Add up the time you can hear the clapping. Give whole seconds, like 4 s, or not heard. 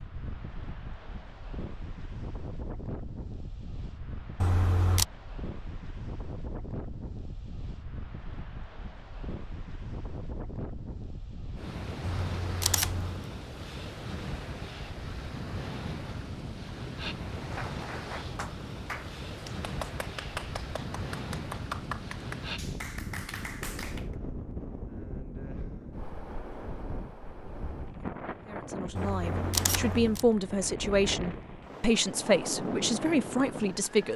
7 s.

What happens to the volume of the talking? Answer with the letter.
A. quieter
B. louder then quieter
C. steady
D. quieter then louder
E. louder
E.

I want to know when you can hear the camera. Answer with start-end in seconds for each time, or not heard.
4.4-5.0, 12.0-13.2, 28.9-30.2.